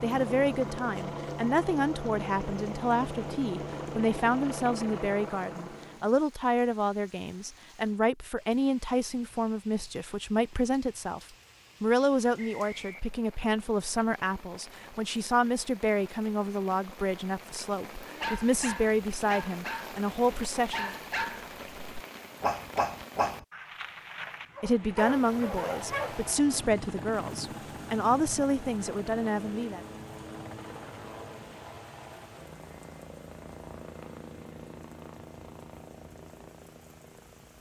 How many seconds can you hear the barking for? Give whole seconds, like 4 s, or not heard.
8 s.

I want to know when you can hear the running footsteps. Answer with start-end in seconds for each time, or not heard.
not heard.